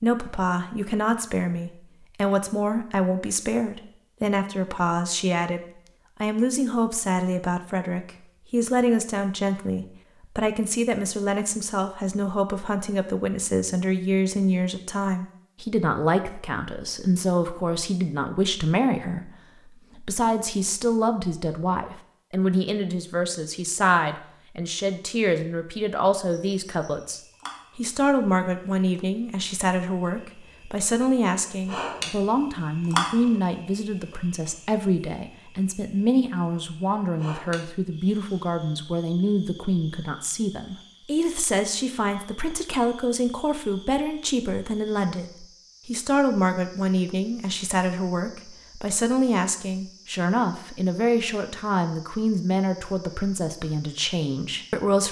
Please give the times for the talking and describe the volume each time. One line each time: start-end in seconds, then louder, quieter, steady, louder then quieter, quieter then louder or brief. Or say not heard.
0.0-5.6 steady
6.2-55.0 steady.